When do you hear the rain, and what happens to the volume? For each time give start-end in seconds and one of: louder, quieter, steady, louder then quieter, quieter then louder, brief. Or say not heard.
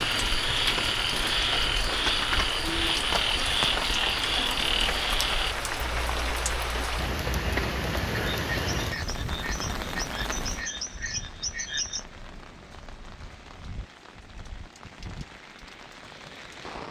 0.0-16.8 quieter.